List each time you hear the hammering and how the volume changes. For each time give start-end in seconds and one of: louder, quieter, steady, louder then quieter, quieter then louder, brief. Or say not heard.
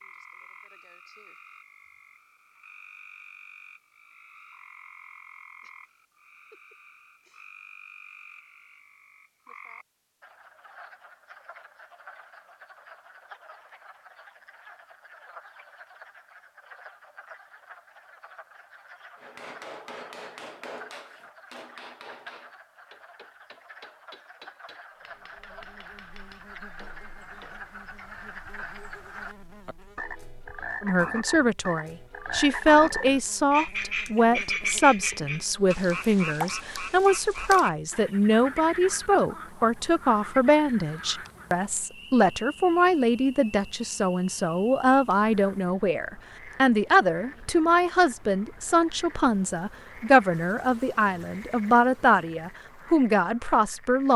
19.1-27.7 quieter.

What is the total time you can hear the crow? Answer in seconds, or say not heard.
not heard.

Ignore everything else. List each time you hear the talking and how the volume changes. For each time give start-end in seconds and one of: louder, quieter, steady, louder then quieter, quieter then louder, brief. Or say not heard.
30.8-54.1 steady.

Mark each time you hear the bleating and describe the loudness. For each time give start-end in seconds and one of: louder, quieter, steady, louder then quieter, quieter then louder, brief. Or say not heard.
not heard.